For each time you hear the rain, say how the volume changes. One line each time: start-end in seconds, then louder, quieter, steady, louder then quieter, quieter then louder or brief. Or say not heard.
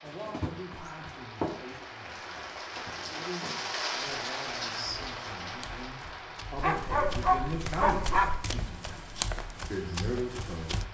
0.0-10.8 louder then quieter.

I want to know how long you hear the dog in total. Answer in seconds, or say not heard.
2 s.